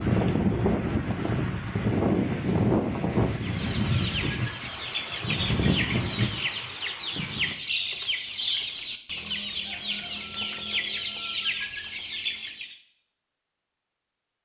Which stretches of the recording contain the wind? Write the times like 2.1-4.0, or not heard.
0.0-7.5.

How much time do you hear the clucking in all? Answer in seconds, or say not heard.
9 s.